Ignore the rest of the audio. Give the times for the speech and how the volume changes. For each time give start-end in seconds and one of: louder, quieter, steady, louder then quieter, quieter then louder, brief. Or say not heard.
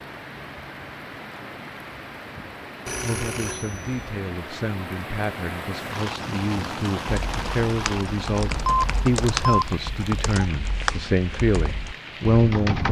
3.0-12.8 louder.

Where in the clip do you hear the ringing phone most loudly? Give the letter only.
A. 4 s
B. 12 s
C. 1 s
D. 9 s
D.